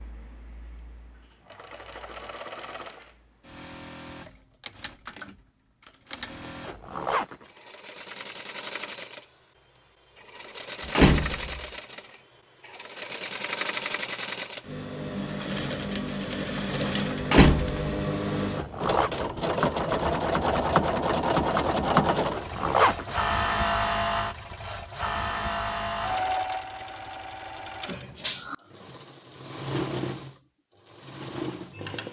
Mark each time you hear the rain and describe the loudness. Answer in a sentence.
You can't hear the rain here.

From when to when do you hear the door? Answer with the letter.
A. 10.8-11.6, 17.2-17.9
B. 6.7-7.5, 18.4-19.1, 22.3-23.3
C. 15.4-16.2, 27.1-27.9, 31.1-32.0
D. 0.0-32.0
A.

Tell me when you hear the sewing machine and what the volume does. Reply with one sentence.
The sewing machine can be heard from 0.0 to 32.0 s, getting louder then quieter.